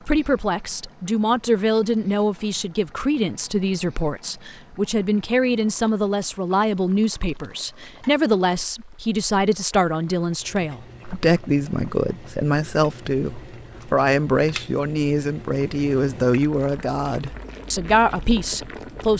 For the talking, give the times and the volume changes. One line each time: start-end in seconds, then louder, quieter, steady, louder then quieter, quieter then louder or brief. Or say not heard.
0.1-19.1 steady.